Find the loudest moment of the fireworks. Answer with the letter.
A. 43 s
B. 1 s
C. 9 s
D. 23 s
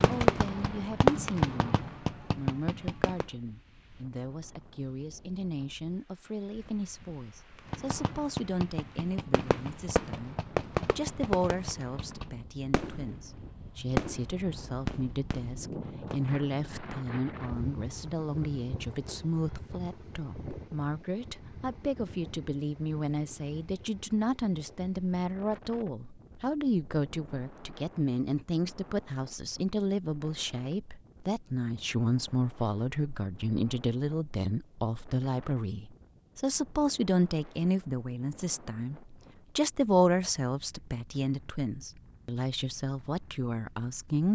B.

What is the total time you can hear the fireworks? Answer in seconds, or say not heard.
12 s.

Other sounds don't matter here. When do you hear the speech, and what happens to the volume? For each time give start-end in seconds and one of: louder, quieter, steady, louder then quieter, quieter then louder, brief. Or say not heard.
0.0-44.3 louder.